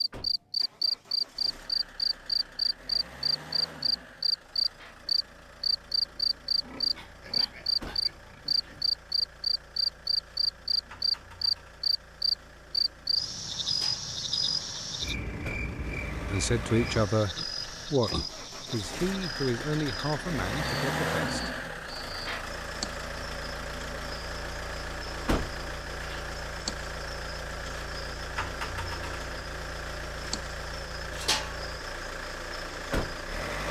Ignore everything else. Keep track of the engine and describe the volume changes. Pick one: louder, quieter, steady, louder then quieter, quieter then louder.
louder.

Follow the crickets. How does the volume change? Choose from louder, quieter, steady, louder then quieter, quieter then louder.
quieter.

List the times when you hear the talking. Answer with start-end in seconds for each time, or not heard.
16.2-21.4.